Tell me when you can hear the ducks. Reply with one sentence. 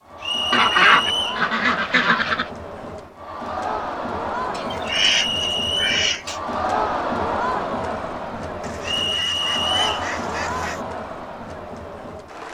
The ducks can be heard from 0.5 to 2.5 s, from 4.5 to 6.4 s and from 8.6 to 10.8 s.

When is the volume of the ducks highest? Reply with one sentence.
The loudest moment of the ducks is at 1 second.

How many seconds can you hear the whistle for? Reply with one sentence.
You can hear the whistle for 3 seconds altogether.